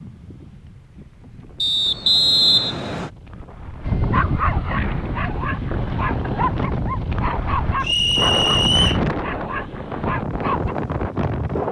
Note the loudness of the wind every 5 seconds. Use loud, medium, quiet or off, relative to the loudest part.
quiet, loud, loud.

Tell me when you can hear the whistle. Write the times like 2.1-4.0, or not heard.
1.6-3.1, 7.8-9.0.